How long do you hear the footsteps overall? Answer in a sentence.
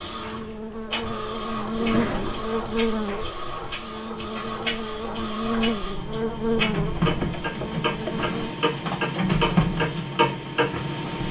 The footsteps can't be heard in this clip.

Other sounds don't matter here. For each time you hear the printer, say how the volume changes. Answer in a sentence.
You can hear the printer from 0.0 to 11.2 s, getting louder.